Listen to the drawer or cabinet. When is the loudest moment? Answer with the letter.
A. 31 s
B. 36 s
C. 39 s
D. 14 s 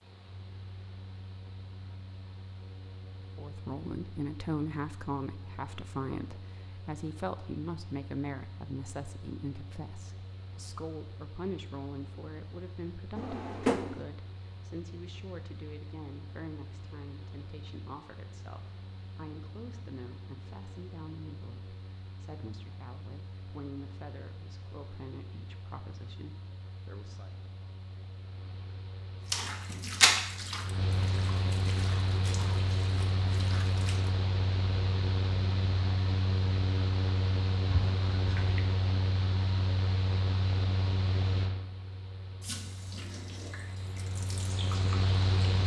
D.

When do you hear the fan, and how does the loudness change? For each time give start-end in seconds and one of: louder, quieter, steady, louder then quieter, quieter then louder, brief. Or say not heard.
0.0-45.6 louder.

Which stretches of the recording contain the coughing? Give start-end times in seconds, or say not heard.
not heard.